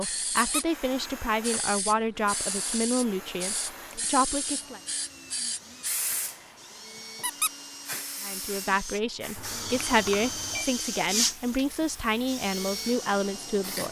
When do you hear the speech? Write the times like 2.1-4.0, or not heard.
0.0-4.8, 8.2-13.8.